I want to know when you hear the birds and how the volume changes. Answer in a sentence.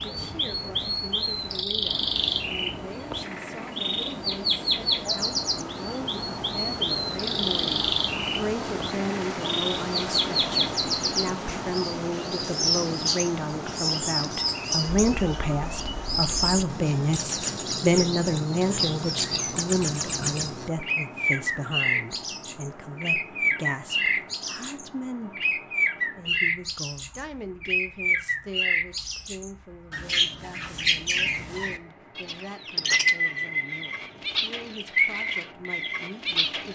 The birds can be heard from 0.0 to 36.6 s, at a steady volume.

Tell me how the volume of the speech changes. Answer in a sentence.
The loudness of the speech goes up, then down.